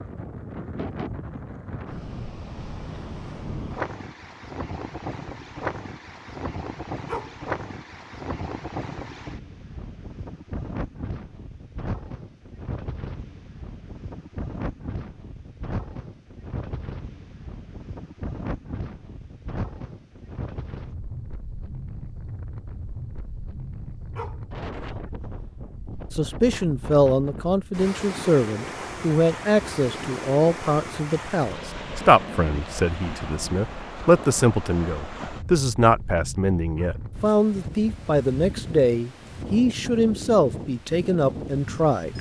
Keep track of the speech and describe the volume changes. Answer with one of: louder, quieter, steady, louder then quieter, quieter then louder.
steady.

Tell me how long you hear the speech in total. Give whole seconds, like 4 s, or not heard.
16 s.